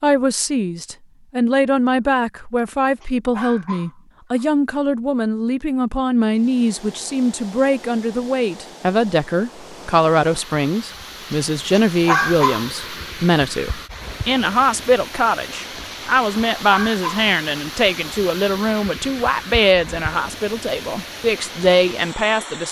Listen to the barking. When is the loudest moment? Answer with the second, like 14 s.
12 s.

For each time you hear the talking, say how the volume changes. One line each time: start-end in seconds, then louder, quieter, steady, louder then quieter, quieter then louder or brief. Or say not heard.
0.0-22.6 steady.